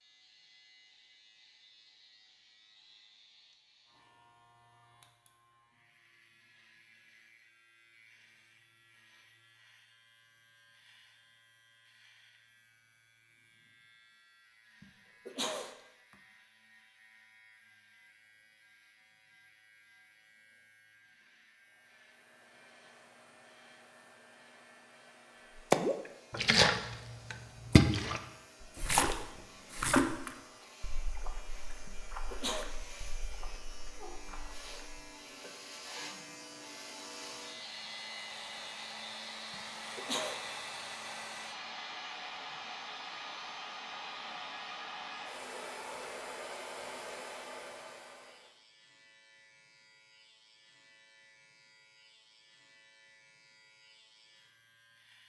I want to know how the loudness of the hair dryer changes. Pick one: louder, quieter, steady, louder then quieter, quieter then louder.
louder.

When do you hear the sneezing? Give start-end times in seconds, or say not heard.
14.8-16.1, 31.9-32.6, 39.5-40.4.